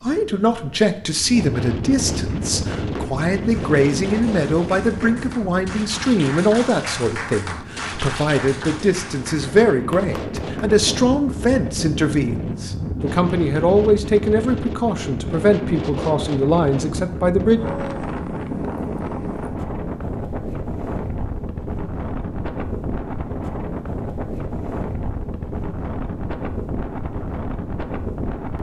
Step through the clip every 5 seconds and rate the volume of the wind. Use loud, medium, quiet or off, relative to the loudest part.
loud, medium, loud, loud, loud, loud.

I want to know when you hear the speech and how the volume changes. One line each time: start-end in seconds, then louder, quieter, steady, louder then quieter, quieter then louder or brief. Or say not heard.
0.0-17.6 steady.